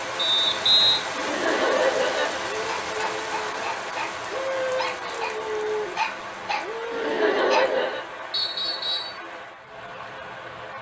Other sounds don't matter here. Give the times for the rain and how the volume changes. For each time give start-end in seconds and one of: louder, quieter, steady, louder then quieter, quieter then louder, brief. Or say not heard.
0.0-10.7 quieter.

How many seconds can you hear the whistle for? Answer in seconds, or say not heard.
2 s.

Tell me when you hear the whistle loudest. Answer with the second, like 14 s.
1 s.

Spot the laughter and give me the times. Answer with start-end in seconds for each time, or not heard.
1.1-2.5, 6.9-8.1.